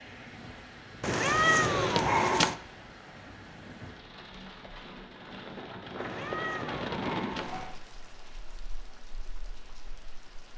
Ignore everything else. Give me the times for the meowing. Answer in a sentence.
You can hear the meowing from 1.0 to 2.5 s and from 6.0 to 7.8 s.